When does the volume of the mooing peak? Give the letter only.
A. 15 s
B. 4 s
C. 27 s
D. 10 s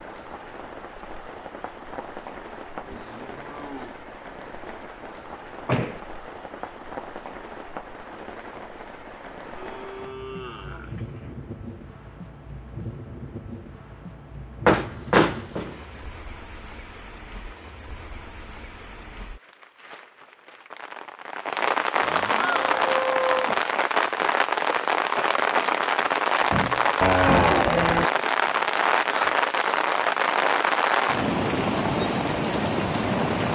C.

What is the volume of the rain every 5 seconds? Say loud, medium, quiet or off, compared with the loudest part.
quiet, quiet, quiet, quiet, loud, loud, loud.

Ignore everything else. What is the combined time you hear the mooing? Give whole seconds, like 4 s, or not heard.
6 s.